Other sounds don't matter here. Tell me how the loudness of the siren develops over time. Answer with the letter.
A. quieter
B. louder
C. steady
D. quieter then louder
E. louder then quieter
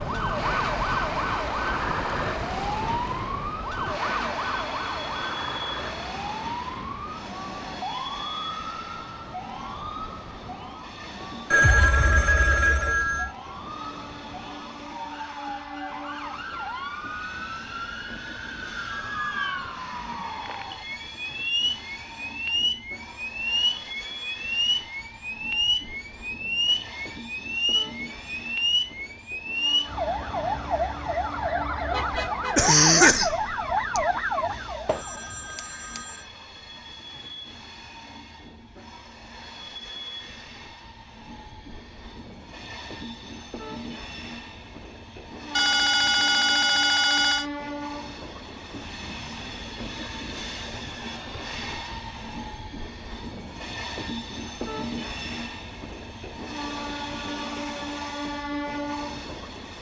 D.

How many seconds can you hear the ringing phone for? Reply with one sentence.
You can hear the ringing phone for 5 seconds altogether.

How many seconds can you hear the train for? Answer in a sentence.
You can hear the train for 60 seconds altogether.